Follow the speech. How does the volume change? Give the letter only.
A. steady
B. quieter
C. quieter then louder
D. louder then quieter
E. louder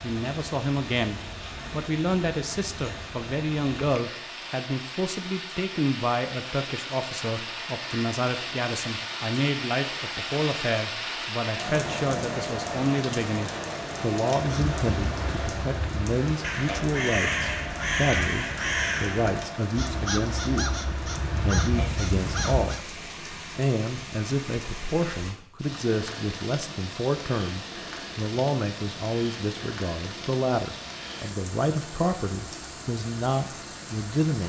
A.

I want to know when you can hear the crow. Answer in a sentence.
The crow can be heard from 14.3 to 22.9 s.